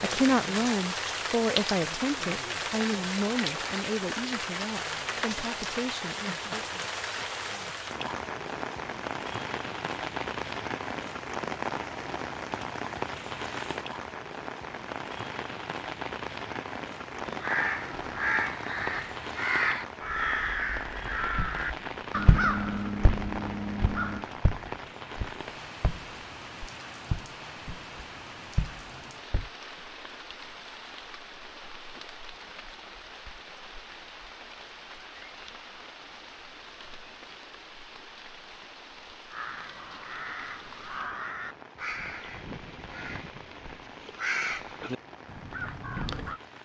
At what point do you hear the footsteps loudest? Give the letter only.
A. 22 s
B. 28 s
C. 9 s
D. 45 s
A.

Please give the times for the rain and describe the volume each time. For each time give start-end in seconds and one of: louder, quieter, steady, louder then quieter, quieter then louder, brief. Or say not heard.
0.0-46.5 quieter.